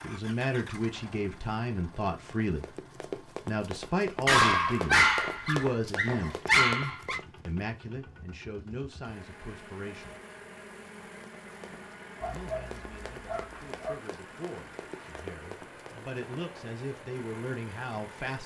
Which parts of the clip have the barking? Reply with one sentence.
You can hear the barking from 4.2 to 7.2 s and from 12.2 to 13.9 s.